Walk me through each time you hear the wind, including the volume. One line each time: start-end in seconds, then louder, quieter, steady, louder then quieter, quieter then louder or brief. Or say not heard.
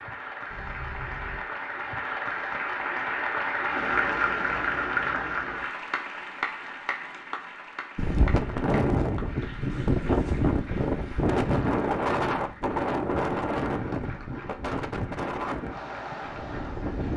8.0-17.1 quieter.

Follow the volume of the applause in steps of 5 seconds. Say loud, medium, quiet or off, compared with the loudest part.
loud, medium, quiet, quiet.